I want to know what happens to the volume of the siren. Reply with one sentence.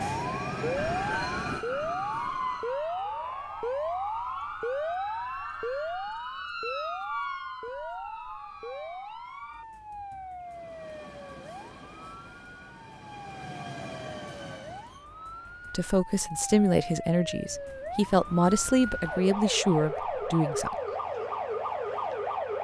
The loudness of the siren goes down, then up.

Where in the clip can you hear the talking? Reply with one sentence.
You can hear the talking from 15.7 to 20.8 s.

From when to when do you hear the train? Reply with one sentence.
You can hear the train from 0.0 to 2.8 s and from 10.4 to 15.1 s.